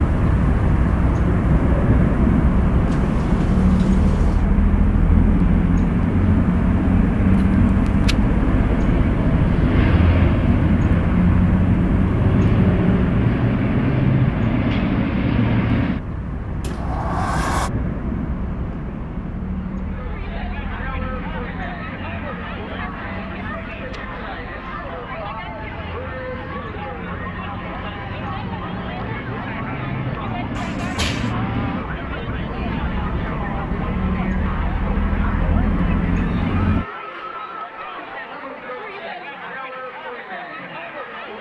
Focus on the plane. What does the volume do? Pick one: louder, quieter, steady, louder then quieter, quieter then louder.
quieter then louder.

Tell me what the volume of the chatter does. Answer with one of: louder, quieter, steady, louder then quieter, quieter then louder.
steady.